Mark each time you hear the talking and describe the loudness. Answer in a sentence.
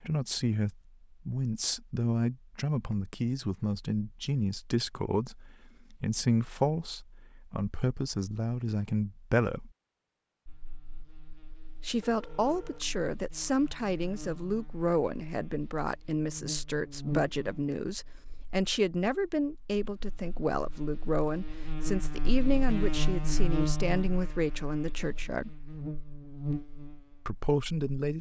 You can hear the talking from 0.0 to 9.7 s, at a steady volume; from 11.8 to 25.6 s, at a steady volume; and briefly from 27.2 to 28.1 s.